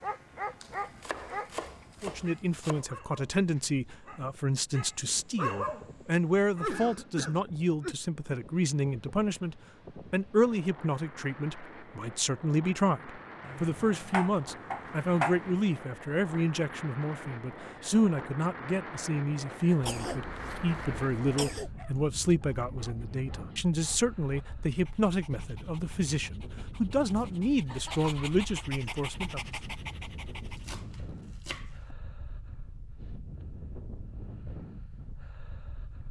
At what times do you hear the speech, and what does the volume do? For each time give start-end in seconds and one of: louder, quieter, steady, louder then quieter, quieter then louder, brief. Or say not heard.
2.0-29.4 steady.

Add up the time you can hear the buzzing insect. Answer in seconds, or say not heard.
not heard.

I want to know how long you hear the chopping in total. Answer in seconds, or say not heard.
6 s.